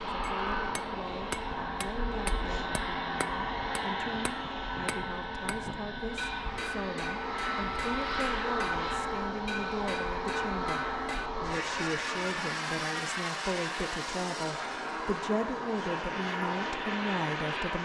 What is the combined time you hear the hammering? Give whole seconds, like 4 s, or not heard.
11 s.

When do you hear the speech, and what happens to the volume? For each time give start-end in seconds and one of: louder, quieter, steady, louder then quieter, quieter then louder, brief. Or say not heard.
0.0-17.7 louder.